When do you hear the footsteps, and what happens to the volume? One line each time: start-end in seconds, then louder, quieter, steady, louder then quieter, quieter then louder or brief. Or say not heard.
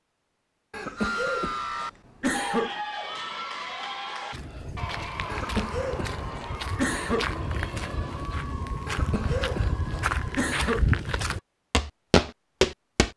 4.3-13.1 louder.